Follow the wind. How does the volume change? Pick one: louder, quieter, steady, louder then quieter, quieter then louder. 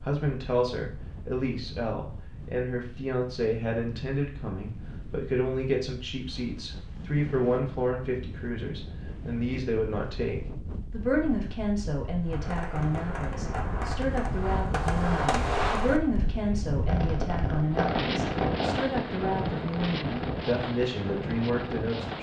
louder.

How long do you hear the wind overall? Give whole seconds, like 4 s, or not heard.
22 s.